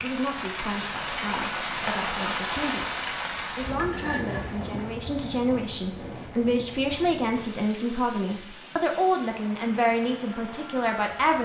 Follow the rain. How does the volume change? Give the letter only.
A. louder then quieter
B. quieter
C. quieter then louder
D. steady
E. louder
B.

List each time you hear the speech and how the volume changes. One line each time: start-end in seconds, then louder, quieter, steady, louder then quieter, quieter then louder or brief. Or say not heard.
0.0-11.4 louder.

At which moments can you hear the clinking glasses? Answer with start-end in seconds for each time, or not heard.
3.6-4.8.